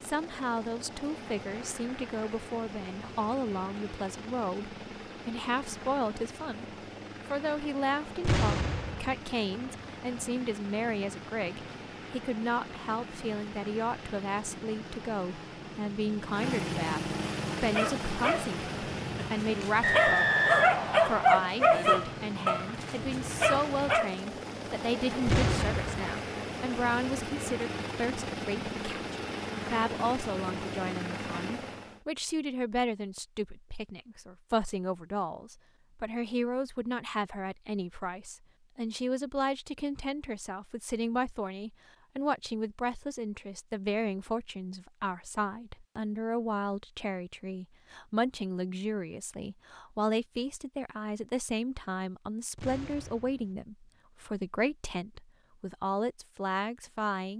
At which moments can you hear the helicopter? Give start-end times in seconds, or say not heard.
0.0-32.0.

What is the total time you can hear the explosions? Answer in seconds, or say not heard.
3 s.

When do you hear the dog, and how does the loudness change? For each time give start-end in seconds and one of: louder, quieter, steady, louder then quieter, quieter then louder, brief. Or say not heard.
17.7-24.2 louder then quieter.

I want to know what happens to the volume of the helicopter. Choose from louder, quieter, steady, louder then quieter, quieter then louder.
louder.